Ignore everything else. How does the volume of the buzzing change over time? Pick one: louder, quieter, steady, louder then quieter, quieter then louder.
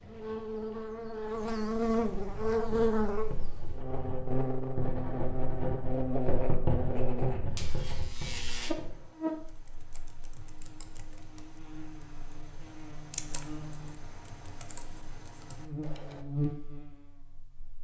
quieter then louder.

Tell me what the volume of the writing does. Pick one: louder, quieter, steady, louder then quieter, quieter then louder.
louder then quieter.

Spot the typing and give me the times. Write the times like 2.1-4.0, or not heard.
8.8-16.2.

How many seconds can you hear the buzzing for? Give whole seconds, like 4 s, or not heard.
18 s.